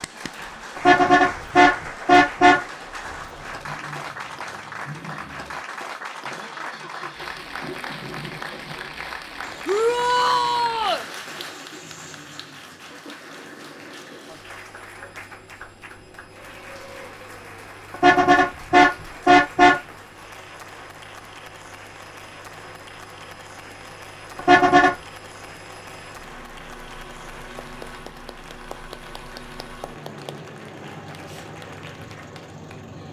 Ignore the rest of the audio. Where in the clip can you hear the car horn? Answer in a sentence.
The car horn can be heard from 0.8 to 2.6 s, from 17.9 to 19.8 s and from 24.4 to 24.9 s.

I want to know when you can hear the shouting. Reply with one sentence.
The shouting can be heard from 9.7 to 11.1 s.